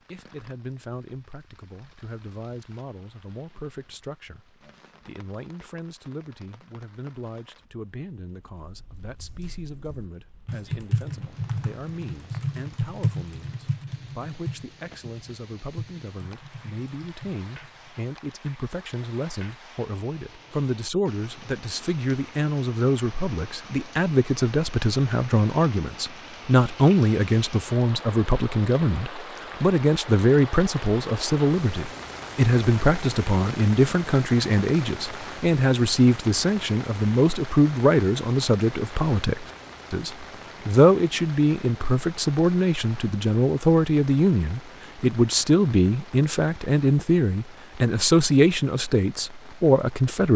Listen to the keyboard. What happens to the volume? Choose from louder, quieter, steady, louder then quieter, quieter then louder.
quieter.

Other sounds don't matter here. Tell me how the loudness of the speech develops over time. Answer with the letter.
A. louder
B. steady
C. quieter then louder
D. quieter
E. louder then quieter
A.